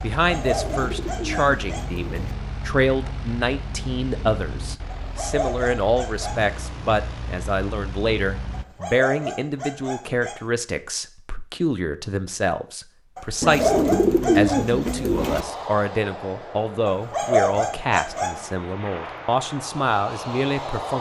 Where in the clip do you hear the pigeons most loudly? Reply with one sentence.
The volume of the pigeons peaks at 14 seconds.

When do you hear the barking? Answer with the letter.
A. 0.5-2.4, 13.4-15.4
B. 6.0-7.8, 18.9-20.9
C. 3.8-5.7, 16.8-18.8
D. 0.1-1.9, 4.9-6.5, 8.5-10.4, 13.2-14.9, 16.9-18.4
D.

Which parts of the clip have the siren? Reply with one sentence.
You can't hear the siren here.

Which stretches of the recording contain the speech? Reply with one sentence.
You can hear the speech from 0.0 to 20.9 s.